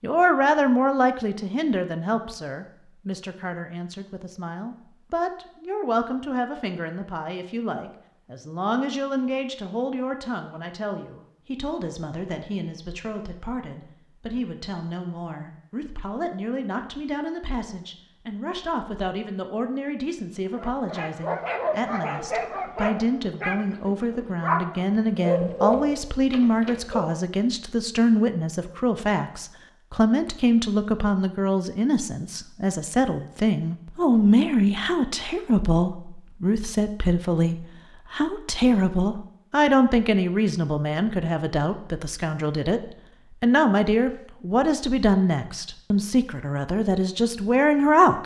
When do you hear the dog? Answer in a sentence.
You can hear the dog from 20.6 to 27.1 s.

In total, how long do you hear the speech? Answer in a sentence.
You can hear the speech for 48 seconds altogether.